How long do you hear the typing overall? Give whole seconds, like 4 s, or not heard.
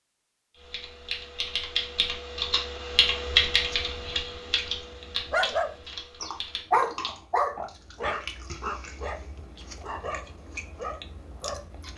6 s.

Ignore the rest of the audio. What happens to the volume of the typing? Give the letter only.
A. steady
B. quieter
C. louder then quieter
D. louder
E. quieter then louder
C.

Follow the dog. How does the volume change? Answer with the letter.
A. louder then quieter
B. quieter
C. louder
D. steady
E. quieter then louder
B.